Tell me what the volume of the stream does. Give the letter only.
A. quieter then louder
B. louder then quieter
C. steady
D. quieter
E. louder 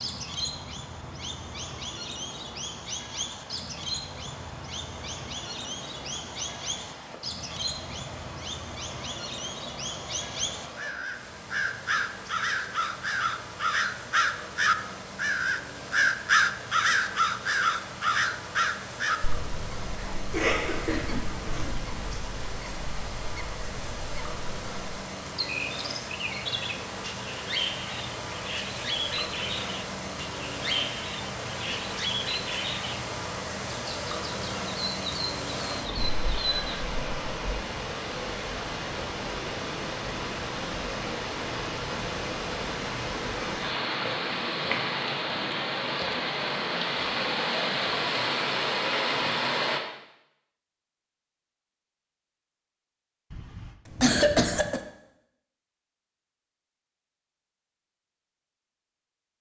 E.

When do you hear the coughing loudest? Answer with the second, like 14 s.
54 s.